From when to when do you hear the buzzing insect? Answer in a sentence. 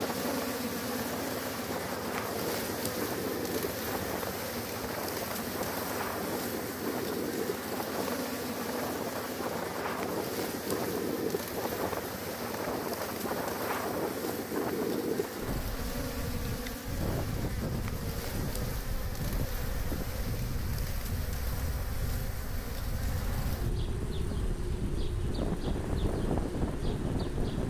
You can hear the buzzing insect from 0.0 to 27.6 s.